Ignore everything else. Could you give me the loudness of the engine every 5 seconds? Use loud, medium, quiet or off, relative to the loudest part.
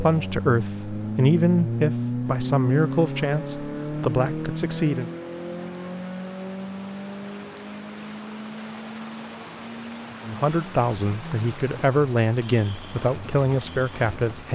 loud, medium, quiet.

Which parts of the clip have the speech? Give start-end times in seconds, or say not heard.
0.0-5.1, 10.2-14.5.